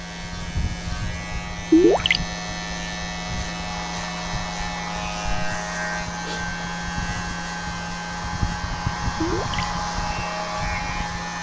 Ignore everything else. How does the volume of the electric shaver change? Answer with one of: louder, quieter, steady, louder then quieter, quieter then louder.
steady.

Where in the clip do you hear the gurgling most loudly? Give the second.
2 s.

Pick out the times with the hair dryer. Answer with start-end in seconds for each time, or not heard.
3.7-11.3.